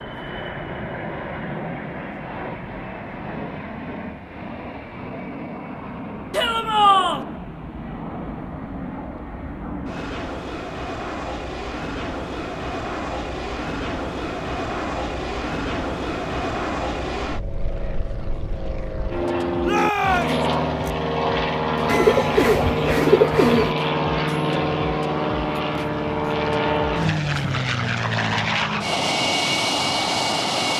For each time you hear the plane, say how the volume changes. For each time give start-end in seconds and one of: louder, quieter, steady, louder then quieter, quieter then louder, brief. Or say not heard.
0.0-30.7 louder.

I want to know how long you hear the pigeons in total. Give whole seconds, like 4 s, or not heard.
2 s.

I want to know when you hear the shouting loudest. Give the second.
7 s.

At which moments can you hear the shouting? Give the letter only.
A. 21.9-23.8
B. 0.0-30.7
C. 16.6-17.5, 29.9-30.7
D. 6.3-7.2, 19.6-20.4
D.